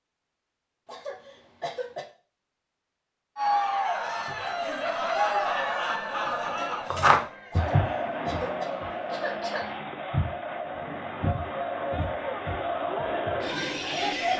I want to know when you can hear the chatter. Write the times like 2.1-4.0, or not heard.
3.4-14.3.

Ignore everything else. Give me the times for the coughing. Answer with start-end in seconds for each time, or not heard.
0.8-2.0, 7.5-9.8.